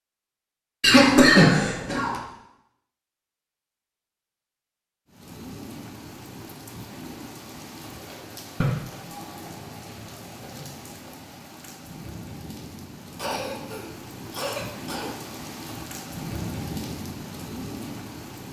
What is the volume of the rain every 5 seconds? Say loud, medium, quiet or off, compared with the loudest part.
off, medium, medium, loud.